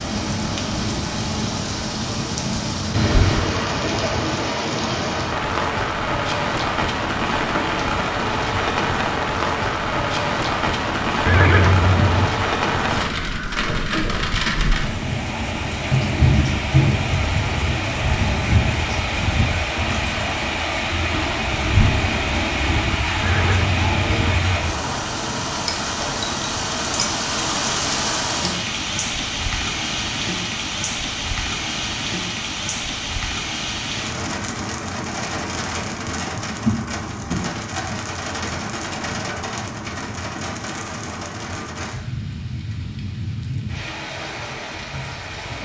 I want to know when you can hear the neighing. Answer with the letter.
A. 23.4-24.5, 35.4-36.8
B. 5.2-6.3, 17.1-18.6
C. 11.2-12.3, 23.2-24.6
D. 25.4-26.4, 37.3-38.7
C.